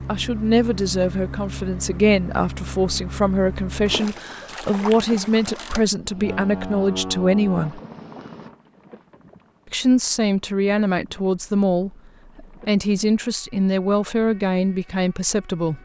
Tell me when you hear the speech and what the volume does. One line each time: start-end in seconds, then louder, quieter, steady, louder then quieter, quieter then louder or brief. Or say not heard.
0.1-7.8 steady
9.7-15.7 steady.